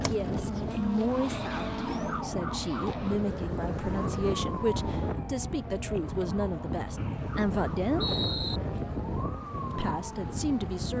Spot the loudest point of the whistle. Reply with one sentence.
The volume of the whistle peaks at 8 seconds.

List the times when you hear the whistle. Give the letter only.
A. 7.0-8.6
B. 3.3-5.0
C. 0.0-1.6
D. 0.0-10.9
A.